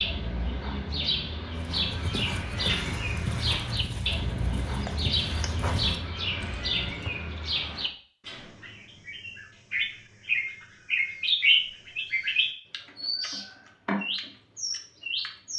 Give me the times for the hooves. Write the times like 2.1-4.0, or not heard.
1.5-7.2.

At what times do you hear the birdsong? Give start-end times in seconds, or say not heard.
0.0-15.5.